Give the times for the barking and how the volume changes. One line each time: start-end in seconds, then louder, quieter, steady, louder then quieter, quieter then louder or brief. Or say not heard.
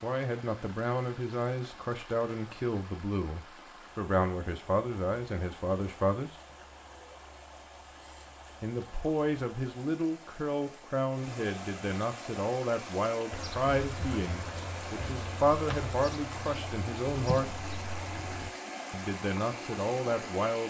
not heard.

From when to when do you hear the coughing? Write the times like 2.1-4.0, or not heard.
not heard.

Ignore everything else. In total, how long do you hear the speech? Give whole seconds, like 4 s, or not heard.
17 s.